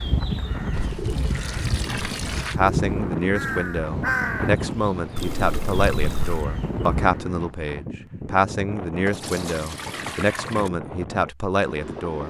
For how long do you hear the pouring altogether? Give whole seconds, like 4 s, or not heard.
5 s.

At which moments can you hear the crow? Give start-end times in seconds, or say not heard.
0.0-7.2.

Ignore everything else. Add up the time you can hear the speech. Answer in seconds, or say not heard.
10 s.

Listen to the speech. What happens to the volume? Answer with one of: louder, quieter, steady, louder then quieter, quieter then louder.
steady.